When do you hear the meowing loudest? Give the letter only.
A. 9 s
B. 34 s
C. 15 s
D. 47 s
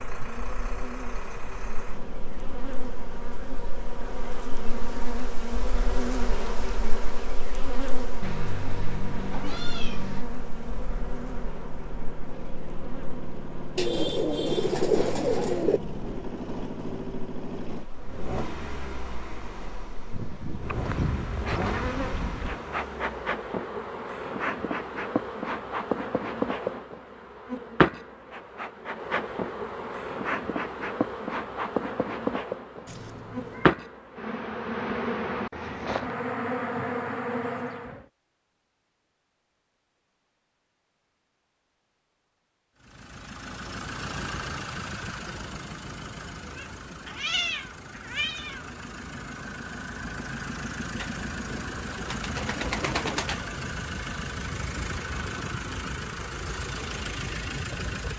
D.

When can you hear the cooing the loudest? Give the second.
15 s.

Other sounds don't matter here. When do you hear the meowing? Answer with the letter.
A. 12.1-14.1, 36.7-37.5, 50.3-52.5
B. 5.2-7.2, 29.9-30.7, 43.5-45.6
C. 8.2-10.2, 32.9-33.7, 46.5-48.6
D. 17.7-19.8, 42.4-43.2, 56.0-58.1
C.